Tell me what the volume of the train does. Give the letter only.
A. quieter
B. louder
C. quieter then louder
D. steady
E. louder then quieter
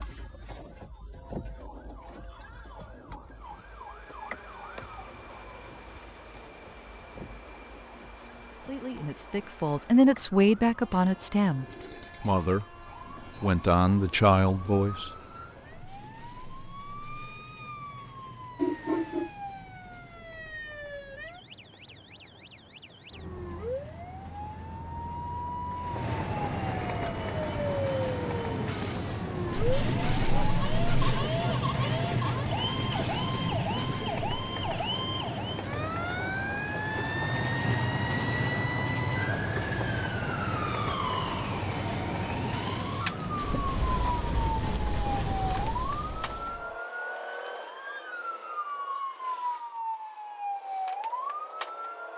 B.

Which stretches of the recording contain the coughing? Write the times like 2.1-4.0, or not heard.
18.6-19.3.